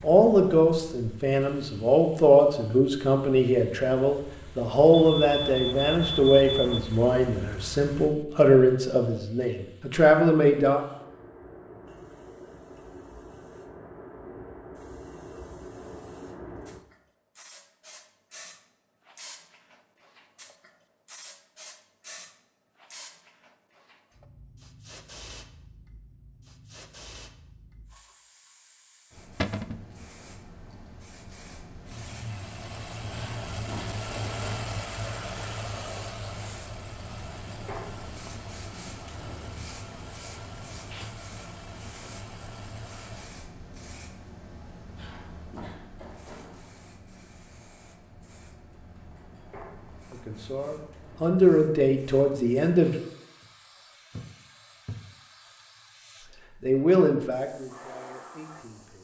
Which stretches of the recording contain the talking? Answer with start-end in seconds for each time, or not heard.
0.0-10.8, 50.1-53.0, 56.6-58.9.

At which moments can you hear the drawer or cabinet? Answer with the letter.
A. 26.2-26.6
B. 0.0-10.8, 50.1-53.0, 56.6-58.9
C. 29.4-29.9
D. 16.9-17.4
C.